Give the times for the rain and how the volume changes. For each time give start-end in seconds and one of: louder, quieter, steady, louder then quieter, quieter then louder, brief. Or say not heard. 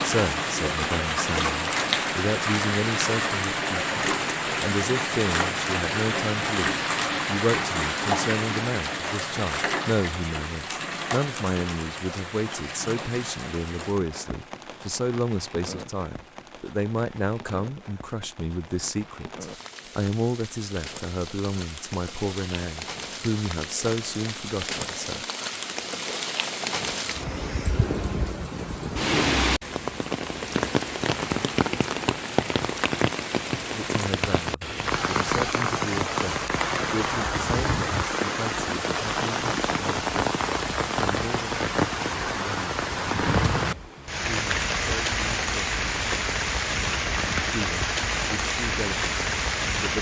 0.0-49.9 quieter then louder.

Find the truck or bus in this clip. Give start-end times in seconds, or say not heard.
not heard.